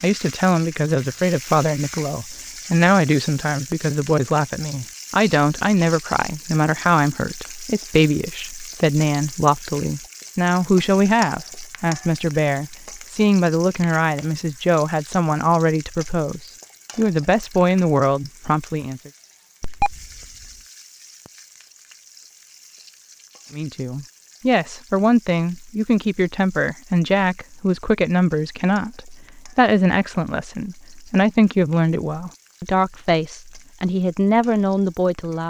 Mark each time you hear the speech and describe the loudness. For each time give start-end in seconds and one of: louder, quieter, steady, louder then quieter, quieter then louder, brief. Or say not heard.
0.0-19.1 steady
23.5-35.4 steady.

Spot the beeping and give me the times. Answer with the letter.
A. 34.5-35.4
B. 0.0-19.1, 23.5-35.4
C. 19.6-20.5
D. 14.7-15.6
C.